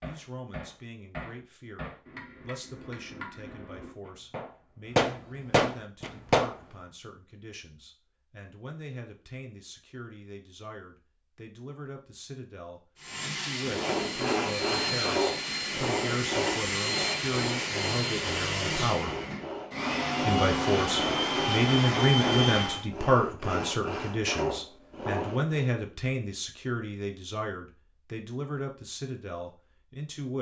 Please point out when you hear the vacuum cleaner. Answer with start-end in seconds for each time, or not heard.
12.9-22.9.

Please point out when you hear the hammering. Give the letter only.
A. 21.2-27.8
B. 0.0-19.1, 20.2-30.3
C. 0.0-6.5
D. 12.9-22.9
C.